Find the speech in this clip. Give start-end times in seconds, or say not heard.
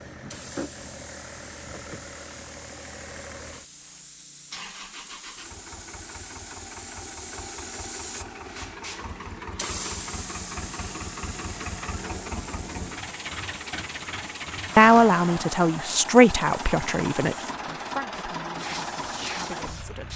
14.8-20.1.